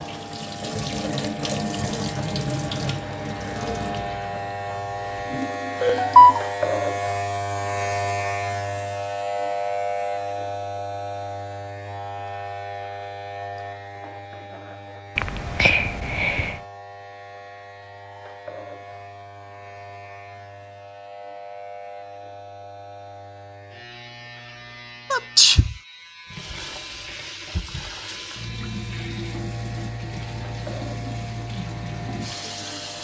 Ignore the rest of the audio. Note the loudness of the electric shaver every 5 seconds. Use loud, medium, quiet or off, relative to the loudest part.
medium, loud, medium, quiet, quiet, quiet, quiet.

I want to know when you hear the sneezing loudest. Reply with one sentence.
The volume of the sneezing peaks at 6 seconds.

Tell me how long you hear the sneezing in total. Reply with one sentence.
You can hear the sneezing for 3 seconds altogether.